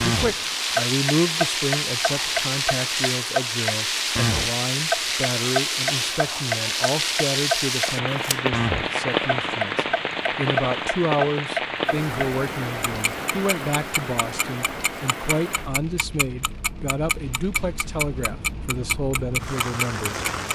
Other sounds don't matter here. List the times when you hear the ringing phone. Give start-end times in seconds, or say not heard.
not heard.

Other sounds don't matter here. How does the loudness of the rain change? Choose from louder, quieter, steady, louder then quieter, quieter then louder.
quieter.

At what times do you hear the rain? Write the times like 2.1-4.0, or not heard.
0.0-20.4.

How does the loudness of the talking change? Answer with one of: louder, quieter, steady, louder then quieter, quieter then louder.
steady.